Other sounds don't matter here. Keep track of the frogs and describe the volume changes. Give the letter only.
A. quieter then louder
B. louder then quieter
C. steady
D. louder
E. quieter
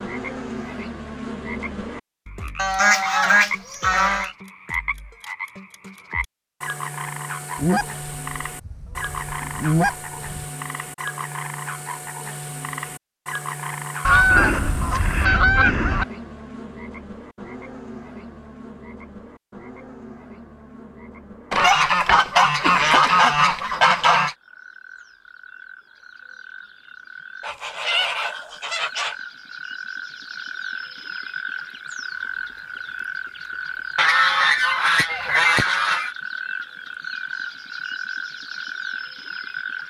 A.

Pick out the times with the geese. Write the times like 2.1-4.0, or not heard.
2.5-4.3, 7.5-10.5, 14.1-16.1, 21.5-24.4, 27.4-29.1, 34.0-36.1.